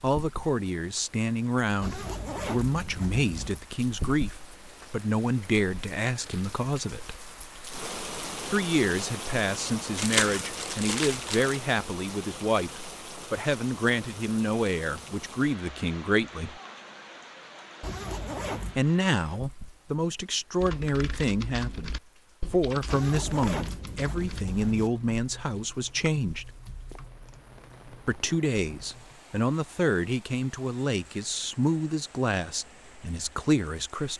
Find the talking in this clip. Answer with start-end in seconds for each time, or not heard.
0.0-7.2, 8.4-16.6, 18.8-26.5, 28.1-34.1.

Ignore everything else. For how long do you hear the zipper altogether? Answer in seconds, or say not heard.
5 s.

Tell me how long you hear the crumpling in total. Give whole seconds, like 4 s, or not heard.
2 s.